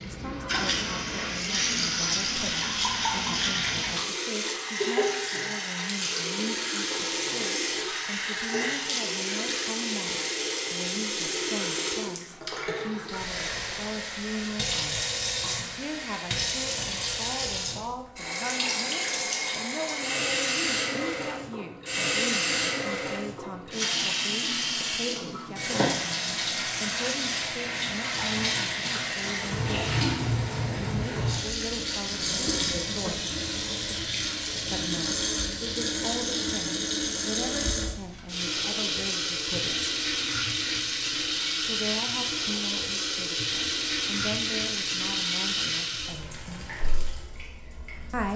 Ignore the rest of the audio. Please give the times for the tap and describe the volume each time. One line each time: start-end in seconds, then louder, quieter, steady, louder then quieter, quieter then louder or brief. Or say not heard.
0.0-48.3 steady.